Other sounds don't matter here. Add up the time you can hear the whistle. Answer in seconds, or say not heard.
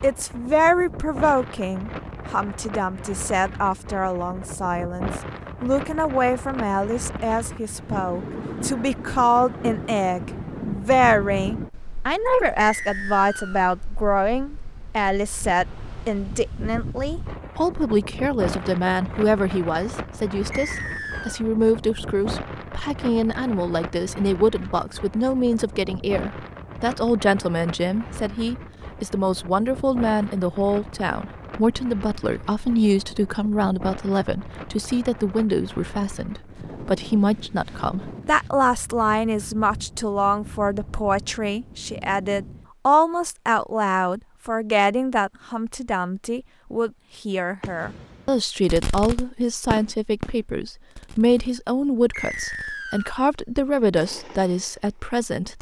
3 s.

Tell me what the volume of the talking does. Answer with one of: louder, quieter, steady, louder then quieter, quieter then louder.
steady.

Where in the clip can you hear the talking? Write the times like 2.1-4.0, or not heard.
0.0-55.5.